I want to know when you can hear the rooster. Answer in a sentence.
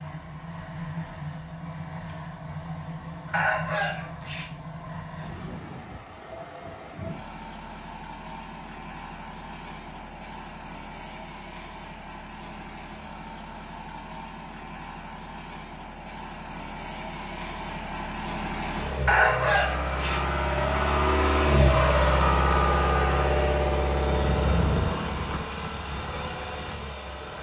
You can hear the rooster from 3.3 to 4.5 s and from 19.1 to 20.2 s.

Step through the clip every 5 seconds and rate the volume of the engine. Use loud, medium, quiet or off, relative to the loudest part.
quiet, quiet, quiet, medium, loud, medium.